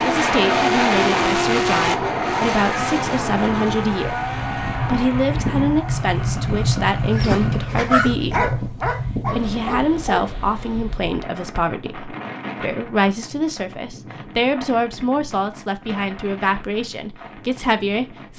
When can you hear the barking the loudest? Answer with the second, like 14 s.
8 s.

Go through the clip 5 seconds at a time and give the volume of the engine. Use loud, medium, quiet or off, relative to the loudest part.
loud, medium, off, off.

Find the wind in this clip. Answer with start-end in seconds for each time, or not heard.
0.0-18.3.